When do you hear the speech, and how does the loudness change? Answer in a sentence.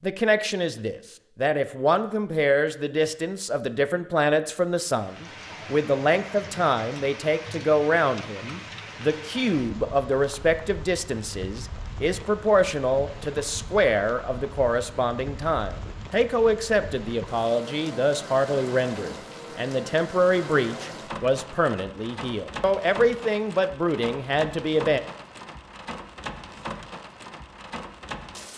You can hear the speech from 0.0 to 25.0 s, at a steady volume.